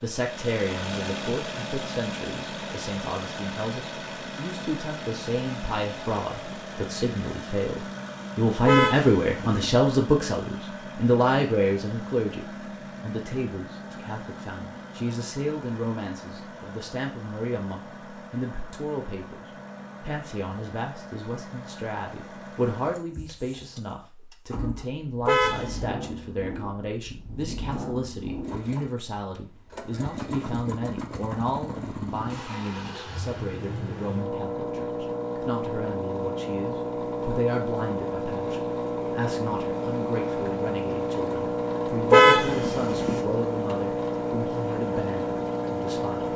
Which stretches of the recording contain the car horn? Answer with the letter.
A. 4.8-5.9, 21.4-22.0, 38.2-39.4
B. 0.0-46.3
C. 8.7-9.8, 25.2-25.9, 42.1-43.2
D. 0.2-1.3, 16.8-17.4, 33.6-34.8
C.